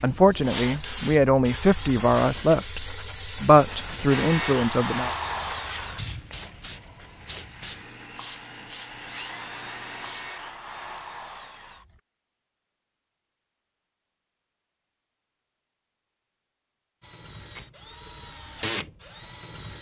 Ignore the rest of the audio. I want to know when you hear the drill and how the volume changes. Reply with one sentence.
The drill can be heard from 4.1 to 12.0 s, getting quieter then louder; and briefly from 17.0 to 19.7 s.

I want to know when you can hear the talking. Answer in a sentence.
The talking can be heard from 0.0 to 5.1 s.